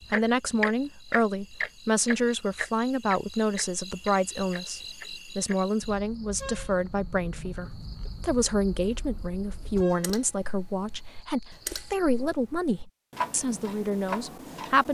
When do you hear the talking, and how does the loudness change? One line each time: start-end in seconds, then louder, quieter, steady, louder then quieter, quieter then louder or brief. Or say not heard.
0.1-14.8 steady.